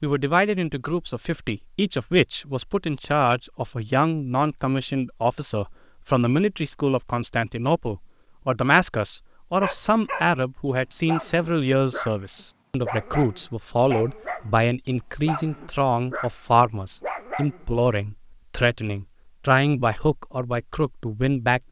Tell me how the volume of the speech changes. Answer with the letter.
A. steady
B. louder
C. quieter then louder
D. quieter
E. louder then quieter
A.